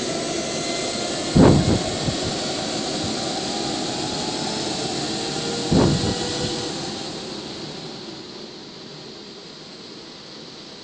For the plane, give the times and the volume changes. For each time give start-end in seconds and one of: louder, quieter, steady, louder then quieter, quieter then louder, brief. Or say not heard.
0.0-10.7 quieter.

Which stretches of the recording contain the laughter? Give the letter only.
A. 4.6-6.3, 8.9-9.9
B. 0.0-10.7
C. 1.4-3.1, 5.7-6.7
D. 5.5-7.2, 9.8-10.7
C.